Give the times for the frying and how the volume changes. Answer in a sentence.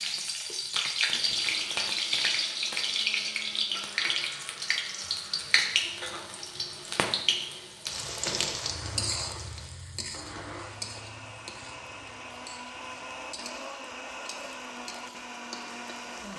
You can hear the frying from 0.0 to 16.3 s, getting quieter.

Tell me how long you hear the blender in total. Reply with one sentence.
You can hear the blender for 16 seconds altogether.